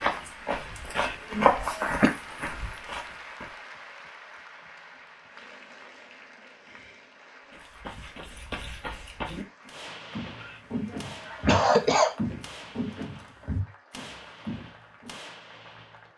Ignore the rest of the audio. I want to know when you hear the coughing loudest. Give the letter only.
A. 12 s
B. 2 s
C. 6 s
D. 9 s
A.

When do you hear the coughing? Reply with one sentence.
You can hear the coughing from 0.9 to 2.1 s and from 10.4 to 12.2 s.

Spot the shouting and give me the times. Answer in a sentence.
You can't hear the shouting here.